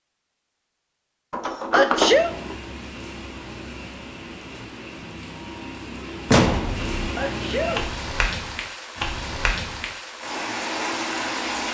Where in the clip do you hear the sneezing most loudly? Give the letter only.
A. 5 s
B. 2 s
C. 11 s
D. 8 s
B.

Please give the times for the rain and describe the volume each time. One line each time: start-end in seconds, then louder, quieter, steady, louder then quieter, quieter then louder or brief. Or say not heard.
2.0-11.6 louder.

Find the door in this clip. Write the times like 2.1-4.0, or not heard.
1.3-2.5, 6.2-7.0.